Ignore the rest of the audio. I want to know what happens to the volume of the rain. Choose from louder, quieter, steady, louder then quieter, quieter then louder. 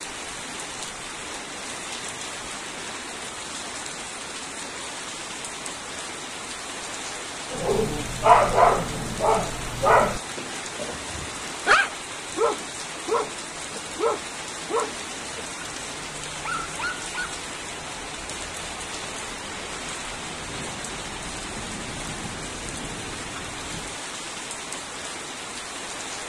steady.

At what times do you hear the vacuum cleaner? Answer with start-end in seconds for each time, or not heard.
not heard.